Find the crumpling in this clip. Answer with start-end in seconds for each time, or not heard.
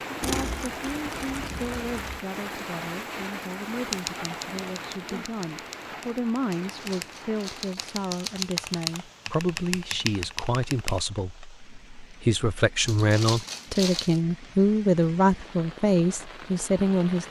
0.2-2.2, 6.6-8.4, 12.8-14.2.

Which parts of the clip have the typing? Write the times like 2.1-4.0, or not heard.
3.9-11.0.